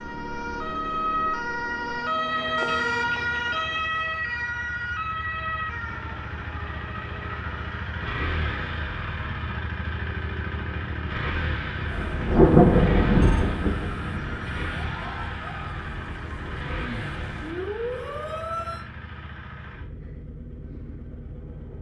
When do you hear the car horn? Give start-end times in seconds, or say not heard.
2.5-3.8.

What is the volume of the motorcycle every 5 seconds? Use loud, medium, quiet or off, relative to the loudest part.
medium, loud, loud, medium, medium.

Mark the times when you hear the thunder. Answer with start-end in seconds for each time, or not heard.
11.8-14.4.